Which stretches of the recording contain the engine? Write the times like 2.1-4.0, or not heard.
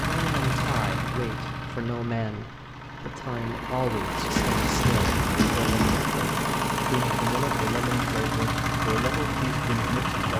0.0-10.3.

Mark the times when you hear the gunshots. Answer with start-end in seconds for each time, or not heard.
4.3-6.0.